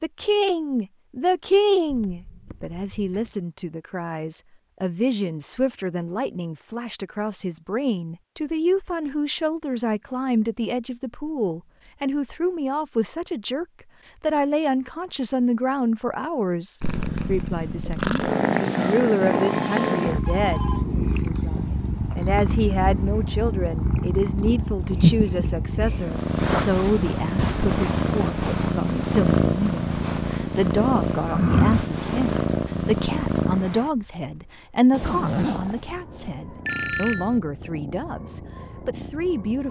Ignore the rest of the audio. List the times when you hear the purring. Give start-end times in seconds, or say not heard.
16.8-39.6.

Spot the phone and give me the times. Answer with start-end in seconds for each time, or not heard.
1.9-3.4, 19.4-20.9, 36.6-37.4.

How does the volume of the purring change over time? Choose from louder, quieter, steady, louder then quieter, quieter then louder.
quieter.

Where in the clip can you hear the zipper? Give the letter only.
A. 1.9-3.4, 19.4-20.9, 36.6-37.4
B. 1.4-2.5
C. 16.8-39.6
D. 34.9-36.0
D.